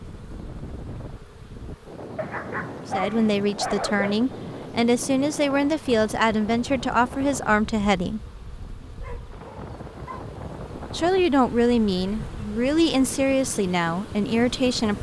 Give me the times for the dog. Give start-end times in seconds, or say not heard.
2.1-4.2, 9.0-10.3.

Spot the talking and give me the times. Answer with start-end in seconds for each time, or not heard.
2.9-8.2, 10.8-14.9.